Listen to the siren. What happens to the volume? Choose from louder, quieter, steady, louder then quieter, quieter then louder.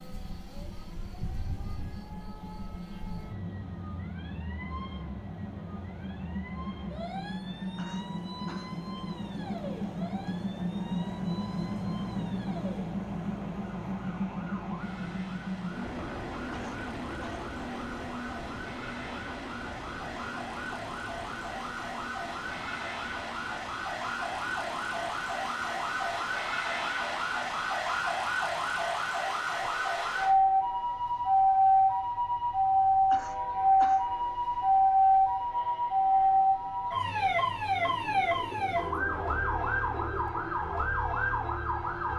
louder.